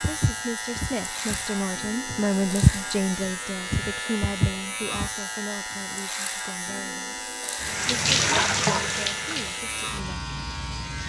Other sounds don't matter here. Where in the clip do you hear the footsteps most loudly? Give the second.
3 s.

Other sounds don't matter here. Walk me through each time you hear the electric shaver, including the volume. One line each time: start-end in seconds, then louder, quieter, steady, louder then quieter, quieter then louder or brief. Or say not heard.
0.0-11.0 steady.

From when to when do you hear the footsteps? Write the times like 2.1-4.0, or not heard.
0.0-5.1.